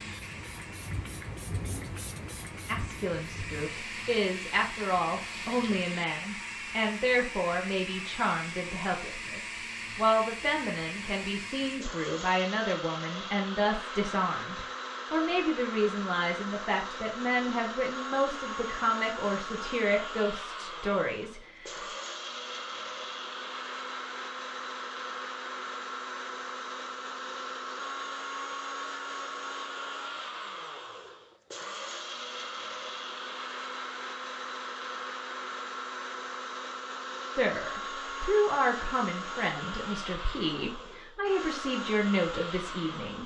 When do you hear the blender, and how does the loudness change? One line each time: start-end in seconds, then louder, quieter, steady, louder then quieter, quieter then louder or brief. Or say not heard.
0.0-43.2 steady.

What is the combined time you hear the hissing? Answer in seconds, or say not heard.
6 s.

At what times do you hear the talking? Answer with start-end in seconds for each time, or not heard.
2.6-21.8, 37.4-43.2.